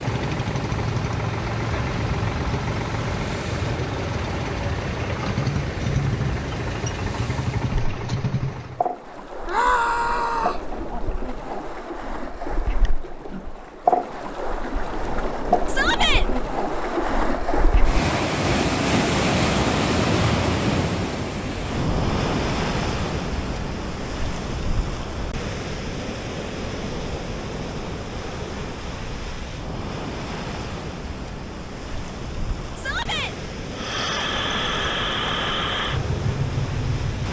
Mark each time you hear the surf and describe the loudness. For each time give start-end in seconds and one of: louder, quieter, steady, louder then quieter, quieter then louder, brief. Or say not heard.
0.0-37.2 louder then quieter.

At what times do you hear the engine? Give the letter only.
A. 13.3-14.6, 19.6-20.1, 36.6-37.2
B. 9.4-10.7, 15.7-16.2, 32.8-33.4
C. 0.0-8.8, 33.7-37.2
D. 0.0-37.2
C.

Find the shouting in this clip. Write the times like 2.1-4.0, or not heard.
9.4-10.7, 15.7-16.2, 32.8-33.4.